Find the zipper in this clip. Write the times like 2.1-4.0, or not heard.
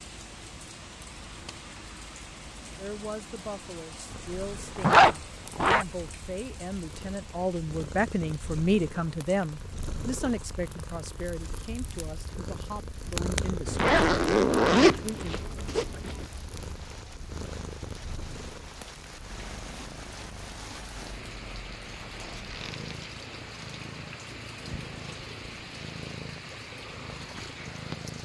4.8-5.8, 13.7-16.2, 21.9-22.9.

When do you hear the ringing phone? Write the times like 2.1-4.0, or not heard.
not heard.